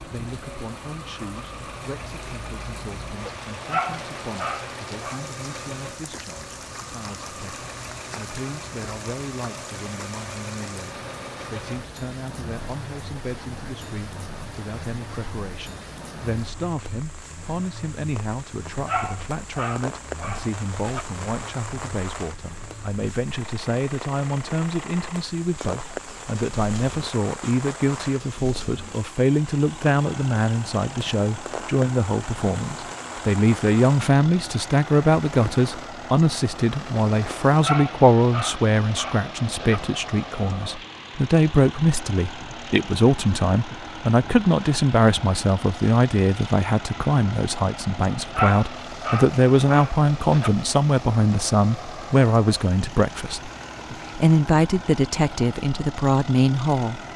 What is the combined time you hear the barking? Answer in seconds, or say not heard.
8 s.